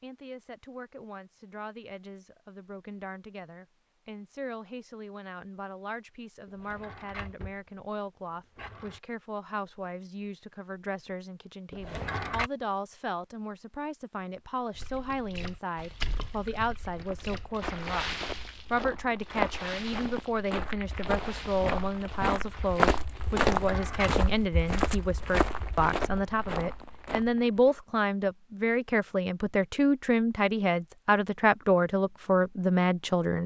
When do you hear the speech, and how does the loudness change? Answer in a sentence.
You can hear the speech from 0.0 to 18.1 s, getting louder; and from 18.7 to 33.4 s, getting louder.